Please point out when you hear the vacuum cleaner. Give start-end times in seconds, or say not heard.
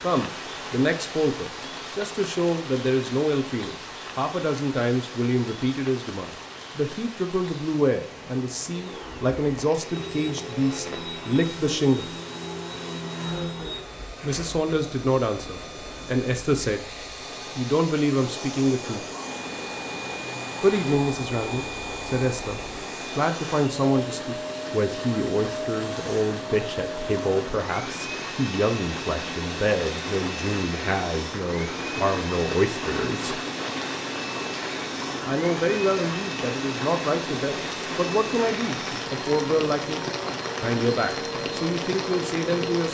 8.7-42.8.